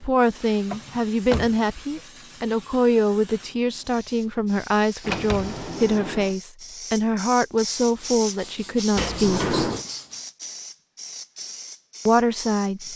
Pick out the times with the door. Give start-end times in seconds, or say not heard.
0.7-2.0, 5.0-6.3, 8.9-9.8.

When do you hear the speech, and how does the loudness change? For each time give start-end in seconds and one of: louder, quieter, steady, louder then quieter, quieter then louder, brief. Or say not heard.
0.0-9.6 steady
12.1-12.9 brief.